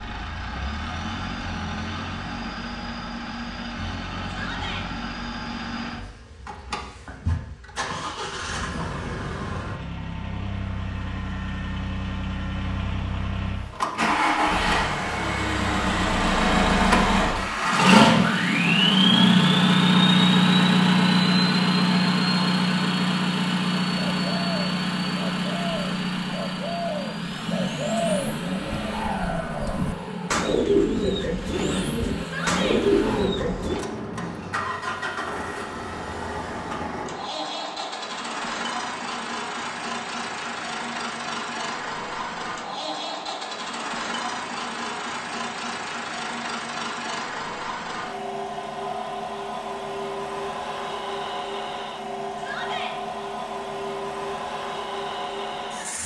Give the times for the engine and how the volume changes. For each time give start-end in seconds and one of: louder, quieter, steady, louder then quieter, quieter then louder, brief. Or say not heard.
0.0-56.0 louder then quieter.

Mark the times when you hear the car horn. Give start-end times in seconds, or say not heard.
not heard.